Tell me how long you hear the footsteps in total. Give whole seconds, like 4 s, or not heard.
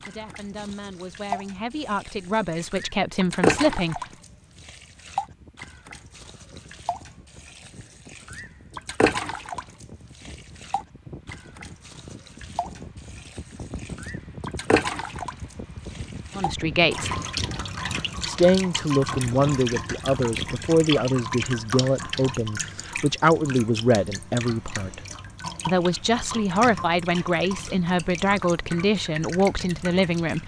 not heard.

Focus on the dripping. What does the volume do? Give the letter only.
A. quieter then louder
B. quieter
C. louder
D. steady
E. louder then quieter
B.